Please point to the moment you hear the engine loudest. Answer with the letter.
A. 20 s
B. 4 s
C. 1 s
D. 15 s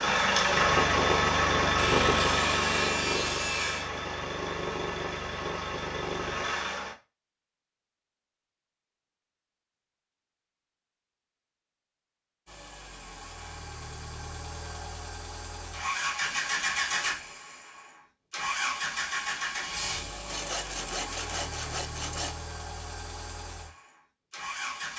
C.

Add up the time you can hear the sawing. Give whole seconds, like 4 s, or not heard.
4 s.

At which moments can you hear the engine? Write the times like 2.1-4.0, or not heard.
0.0-7.0, 12.4-24.9.